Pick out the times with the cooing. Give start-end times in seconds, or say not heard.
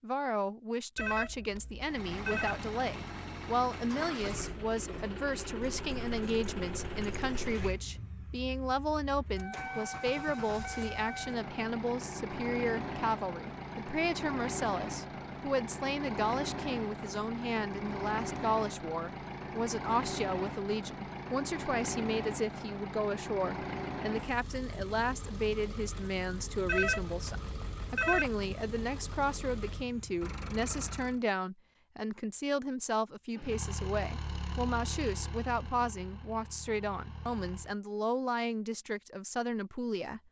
not heard.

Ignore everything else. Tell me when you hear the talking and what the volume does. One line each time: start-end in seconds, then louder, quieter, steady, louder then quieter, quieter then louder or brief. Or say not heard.
0.0-40.2 steady.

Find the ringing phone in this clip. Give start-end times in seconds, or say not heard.
0.9-2.6, 26.6-28.4.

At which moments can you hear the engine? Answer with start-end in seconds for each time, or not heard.
1.9-31.2, 33.4-37.8.